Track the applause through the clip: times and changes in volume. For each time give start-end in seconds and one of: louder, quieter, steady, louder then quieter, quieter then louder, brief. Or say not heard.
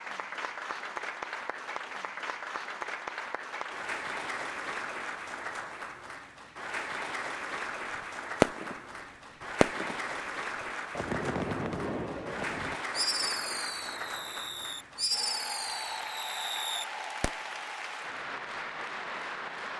0.0-19.7 steady.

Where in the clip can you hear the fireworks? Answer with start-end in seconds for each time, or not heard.
8.0-10.2, 10.9-17.4.